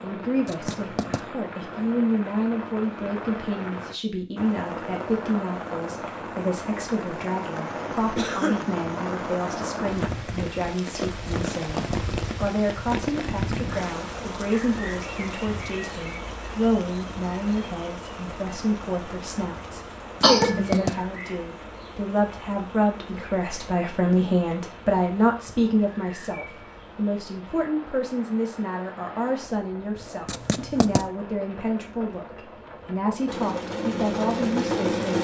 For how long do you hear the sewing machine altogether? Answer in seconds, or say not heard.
2 s.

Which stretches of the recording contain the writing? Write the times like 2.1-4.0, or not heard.
0.5-1.2, 11.2-12.1, 20.2-21.0, 30.2-31.1.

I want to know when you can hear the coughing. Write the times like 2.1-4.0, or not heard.
8.2-8.7, 20.2-21.0.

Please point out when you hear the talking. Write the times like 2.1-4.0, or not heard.
0.0-35.1.